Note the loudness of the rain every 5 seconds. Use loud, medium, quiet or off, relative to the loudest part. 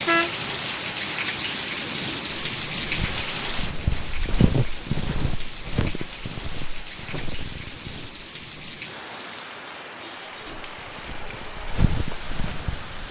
loud, medium, medium.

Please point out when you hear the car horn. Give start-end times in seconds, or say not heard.
0.1-0.7.